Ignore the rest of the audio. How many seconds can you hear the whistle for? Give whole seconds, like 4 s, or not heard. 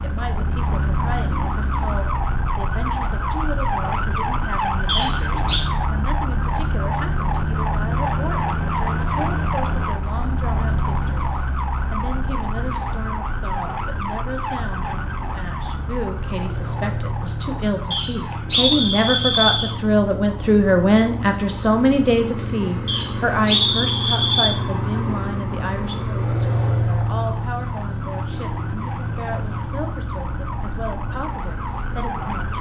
4 s.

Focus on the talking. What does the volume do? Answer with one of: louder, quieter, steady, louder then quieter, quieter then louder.
louder then quieter.